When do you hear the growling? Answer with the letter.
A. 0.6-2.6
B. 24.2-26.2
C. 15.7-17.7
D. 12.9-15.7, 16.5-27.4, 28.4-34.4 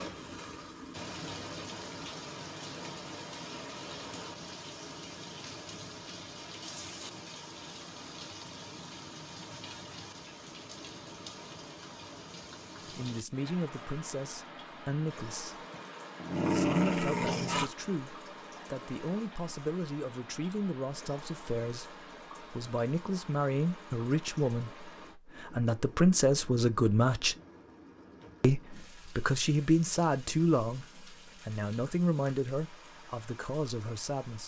C.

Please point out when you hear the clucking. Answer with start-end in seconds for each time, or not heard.
not heard.